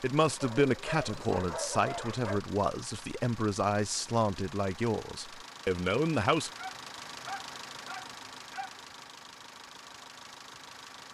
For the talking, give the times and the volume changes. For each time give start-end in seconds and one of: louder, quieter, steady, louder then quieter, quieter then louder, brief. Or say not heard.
0.0-6.5 steady.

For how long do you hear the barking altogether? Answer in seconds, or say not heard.
4 s.